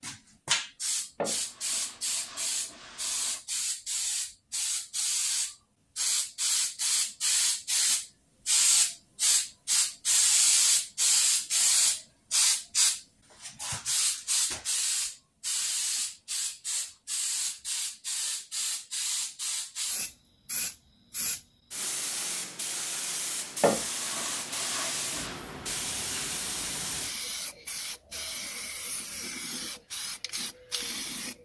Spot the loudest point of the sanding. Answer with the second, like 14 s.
24 s.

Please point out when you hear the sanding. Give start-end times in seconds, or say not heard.
1.2-3.4, 23.6-25.4.